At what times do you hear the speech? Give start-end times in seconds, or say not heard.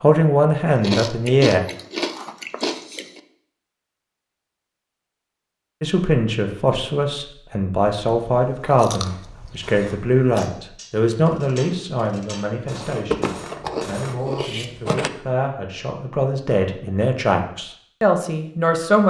0.0-1.6, 5.8-19.0.